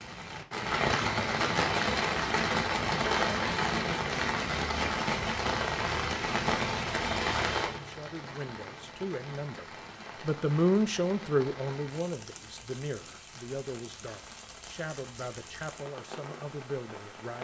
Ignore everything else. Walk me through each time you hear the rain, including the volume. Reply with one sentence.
The rain can be heard from 0.0 to 17.3 s, getting quieter.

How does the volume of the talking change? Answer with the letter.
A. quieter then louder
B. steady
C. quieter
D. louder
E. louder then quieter
E.